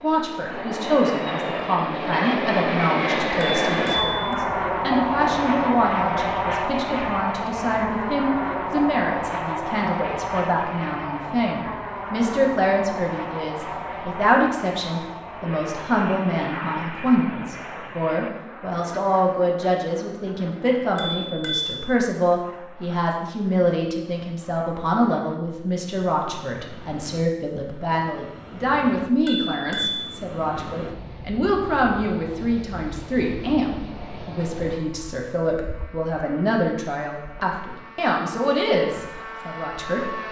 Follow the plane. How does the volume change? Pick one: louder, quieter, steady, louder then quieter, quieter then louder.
quieter.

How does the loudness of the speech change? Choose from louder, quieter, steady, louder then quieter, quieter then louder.
steady.